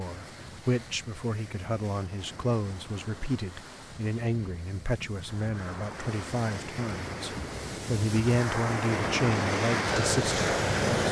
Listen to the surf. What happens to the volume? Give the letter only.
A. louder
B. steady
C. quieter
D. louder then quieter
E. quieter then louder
A.